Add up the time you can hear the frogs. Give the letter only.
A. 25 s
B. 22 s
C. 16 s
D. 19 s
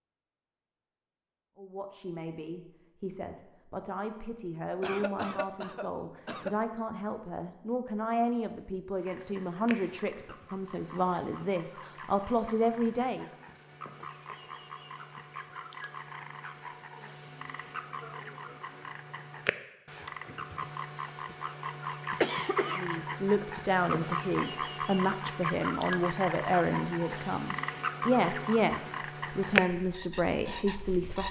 B.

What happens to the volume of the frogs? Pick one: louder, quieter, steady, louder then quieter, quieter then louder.
louder.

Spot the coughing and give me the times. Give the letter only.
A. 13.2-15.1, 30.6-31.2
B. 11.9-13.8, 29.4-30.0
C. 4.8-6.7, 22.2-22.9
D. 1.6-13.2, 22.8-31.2
C.